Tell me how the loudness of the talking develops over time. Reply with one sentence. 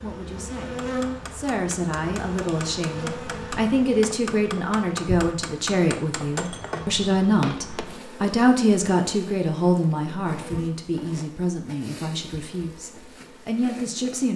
The volume of the talking goes up, then down.